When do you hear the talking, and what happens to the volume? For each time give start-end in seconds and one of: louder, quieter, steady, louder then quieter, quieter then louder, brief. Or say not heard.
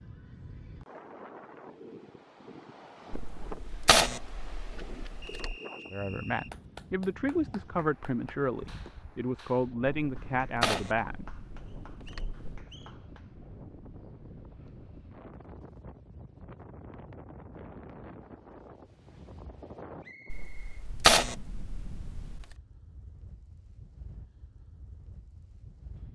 5.9-11.2 steady.